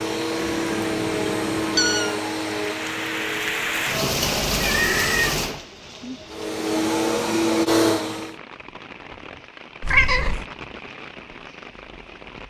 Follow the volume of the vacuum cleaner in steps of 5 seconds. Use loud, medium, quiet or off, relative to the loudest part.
medium, loud, off.